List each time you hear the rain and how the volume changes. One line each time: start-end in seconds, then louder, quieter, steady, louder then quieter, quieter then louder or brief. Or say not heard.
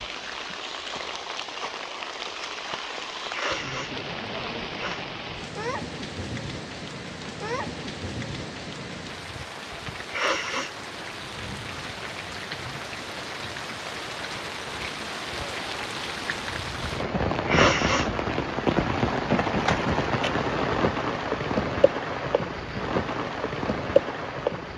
0.0-24.7 louder.